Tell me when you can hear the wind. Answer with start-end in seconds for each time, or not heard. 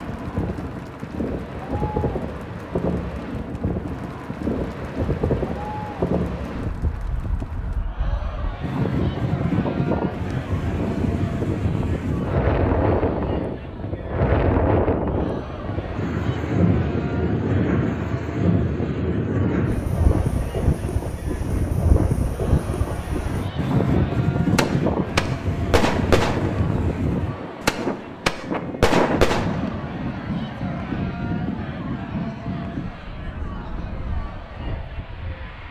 0.0-35.6.